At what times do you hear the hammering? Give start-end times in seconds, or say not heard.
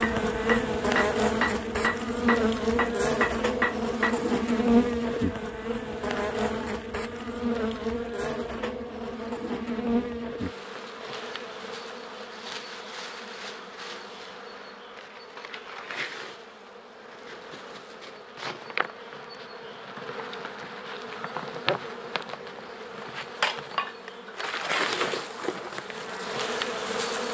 0.0-4.3.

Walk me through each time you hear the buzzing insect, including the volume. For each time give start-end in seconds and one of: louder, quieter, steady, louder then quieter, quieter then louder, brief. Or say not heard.
0.0-27.2 quieter then louder.